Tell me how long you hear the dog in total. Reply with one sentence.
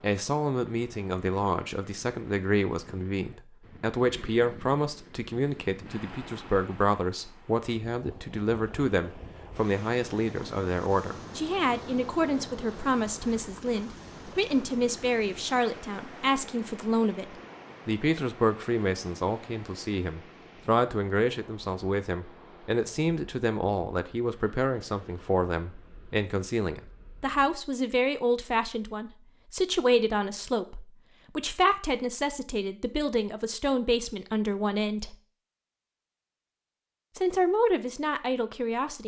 You can't hear the dog here.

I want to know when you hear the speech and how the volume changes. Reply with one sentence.
The speech can be heard from 0.0 to 35.1 s, at a steady volume; and briefly from 37.1 to 39.0 s.